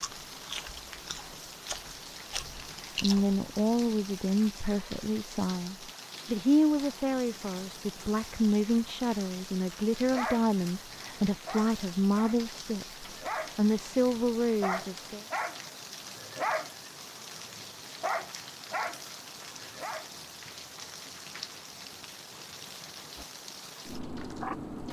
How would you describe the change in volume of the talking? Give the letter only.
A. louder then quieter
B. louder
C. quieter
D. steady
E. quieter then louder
D.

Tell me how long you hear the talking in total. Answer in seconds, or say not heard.
12 s.